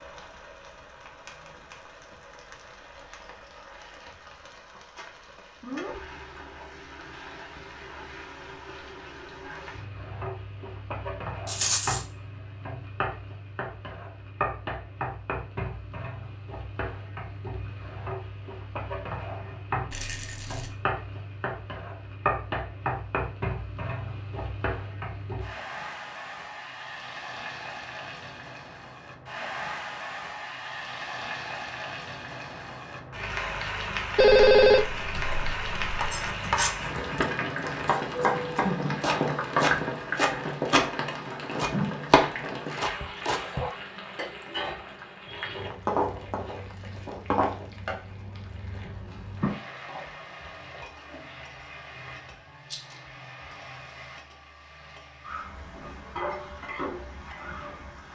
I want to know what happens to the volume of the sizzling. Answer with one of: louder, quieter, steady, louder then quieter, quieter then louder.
louder then quieter.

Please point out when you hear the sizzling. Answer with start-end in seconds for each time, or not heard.
0.0-58.0.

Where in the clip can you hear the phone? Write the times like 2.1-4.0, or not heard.
34.1-36.0.